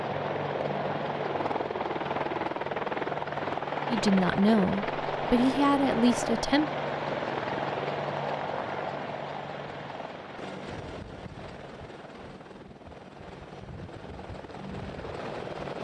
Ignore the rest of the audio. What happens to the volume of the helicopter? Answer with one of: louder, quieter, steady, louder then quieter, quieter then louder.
quieter.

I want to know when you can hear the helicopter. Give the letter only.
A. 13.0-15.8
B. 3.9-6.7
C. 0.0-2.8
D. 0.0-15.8
D.